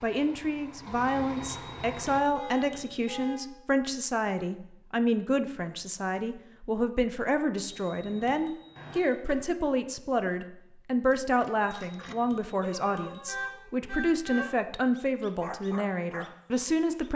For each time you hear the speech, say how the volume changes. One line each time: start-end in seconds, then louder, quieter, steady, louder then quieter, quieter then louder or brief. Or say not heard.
0.0-17.1 steady.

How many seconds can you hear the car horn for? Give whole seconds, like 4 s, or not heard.
3 s.